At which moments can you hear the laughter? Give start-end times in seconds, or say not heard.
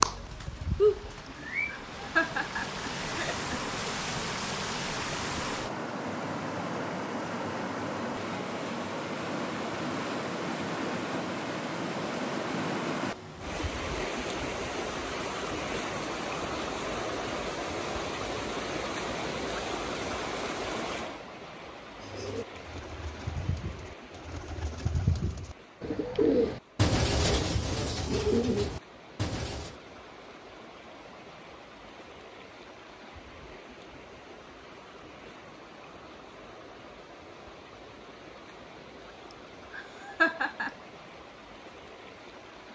1.6-3.8, 39.7-40.8.